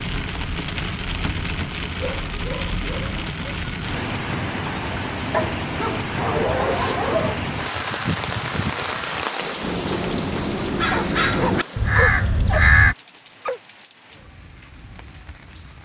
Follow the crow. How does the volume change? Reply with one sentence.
The loudness of the crow goes up.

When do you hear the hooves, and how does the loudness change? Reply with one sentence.
You can't hear the hooves here.